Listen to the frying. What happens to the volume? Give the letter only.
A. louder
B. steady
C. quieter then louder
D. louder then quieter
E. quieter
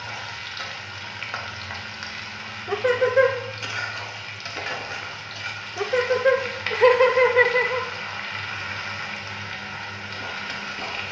B.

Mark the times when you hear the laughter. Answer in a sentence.
You can hear the laughter from 2.6 to 3.4 s and from 5.8 to 7.8 s.